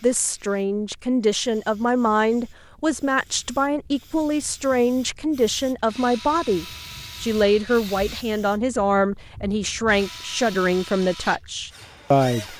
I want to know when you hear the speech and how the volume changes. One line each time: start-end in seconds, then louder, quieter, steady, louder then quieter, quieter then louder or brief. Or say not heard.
0.0-12.5 steady.